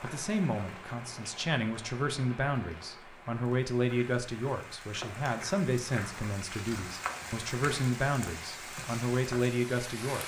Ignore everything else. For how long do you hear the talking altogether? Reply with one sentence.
You can hear the talking for 10 seconds altogether.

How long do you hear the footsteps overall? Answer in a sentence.
The footsteps can't be heard in this clip.